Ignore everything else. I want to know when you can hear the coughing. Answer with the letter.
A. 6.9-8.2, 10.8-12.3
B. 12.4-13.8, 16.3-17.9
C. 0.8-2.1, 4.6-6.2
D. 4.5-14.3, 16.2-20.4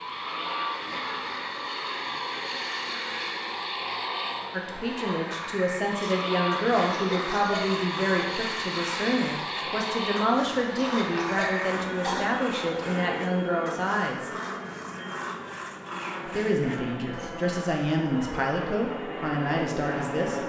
A.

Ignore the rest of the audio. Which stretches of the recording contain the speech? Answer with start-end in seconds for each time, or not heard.
4.5-14.3, 16.2-20.4.